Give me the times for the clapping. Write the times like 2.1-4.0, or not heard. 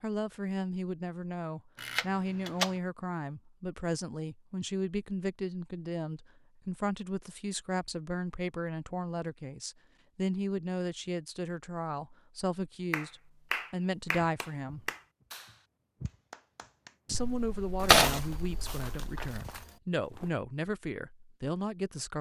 12.9-16.9.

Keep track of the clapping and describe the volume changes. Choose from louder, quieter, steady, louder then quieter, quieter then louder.
quieter.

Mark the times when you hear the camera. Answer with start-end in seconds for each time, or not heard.
1.8-2.8, 17.1-19.4.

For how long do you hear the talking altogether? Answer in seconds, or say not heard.
20 s.